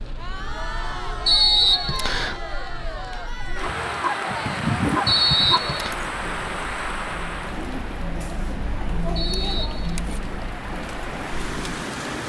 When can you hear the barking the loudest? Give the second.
5 s.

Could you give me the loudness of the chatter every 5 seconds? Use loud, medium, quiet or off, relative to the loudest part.
loud, loud, medium.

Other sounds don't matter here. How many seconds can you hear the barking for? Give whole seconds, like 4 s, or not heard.
2 s.